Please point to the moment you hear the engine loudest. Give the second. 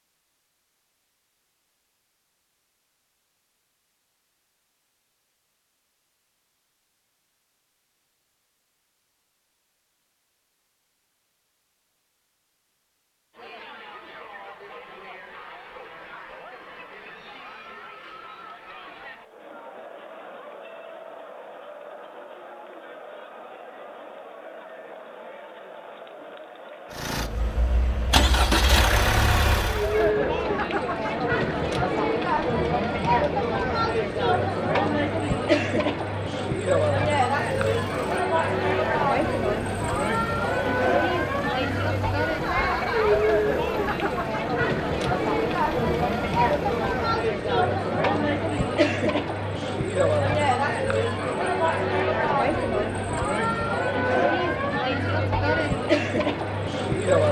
29 s.